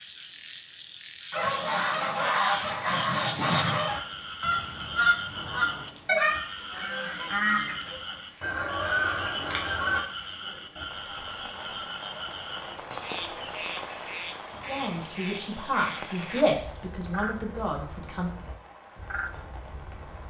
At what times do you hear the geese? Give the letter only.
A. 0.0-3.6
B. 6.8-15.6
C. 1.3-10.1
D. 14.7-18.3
C.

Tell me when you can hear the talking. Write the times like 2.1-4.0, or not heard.
14.7-18.3.